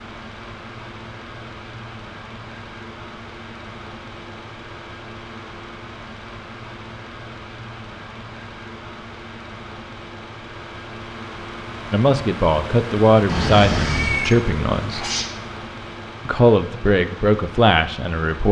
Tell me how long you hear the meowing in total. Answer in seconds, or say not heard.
2 s.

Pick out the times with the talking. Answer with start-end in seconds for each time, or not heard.
11.9-15.1, 16.2-18.4.